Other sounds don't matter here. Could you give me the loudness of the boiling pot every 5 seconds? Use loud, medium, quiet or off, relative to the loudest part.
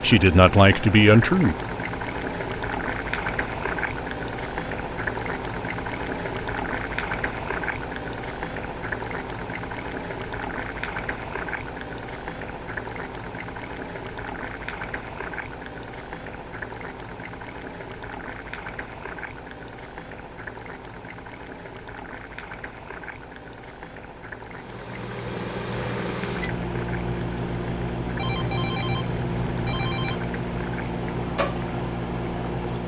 loud, loud, loud, medium, medium, medium, medium.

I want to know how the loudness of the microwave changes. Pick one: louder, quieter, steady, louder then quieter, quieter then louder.
steady.